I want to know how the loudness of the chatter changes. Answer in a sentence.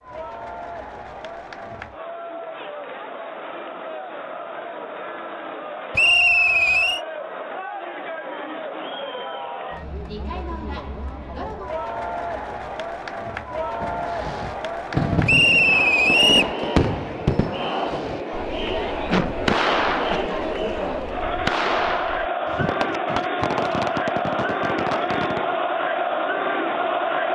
The loudness of the chatter goes up.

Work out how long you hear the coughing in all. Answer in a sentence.
You can hear the coughing for 2 seconds altogether.